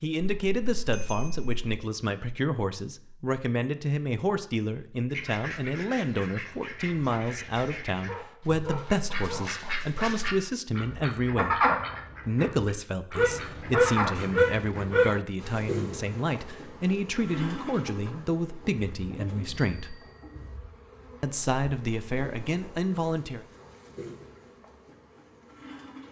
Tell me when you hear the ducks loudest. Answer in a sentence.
The loudest moment of the ducks is at 12 seconds.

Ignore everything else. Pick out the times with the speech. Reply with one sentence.
The speech can be heard from 0.0 to 11.7 s, from 12.2 to 19.9 s and from 21.2 to 23.4 s.